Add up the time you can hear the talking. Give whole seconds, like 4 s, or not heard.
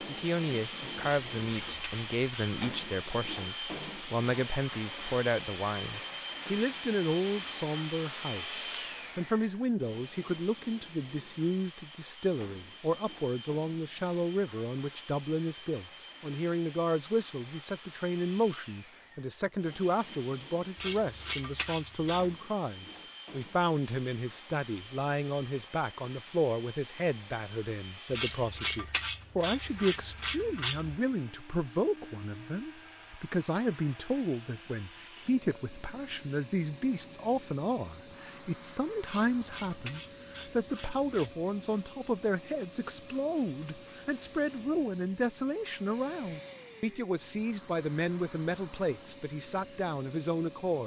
51 s.